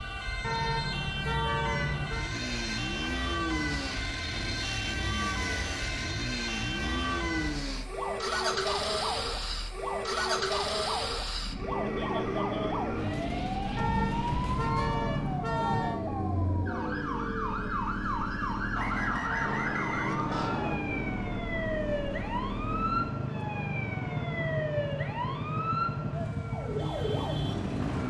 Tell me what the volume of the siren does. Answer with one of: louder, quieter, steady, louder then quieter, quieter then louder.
steady.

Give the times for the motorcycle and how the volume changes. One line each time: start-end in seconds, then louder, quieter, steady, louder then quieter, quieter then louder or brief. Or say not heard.
2.0-28.0 steady.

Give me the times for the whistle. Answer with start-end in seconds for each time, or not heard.
18.8-20.8.